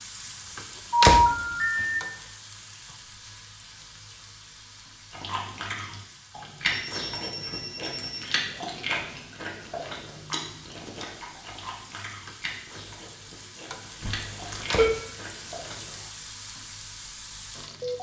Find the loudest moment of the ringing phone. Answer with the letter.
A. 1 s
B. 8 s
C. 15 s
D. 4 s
A.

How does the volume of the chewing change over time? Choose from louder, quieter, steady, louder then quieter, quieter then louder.
quieter.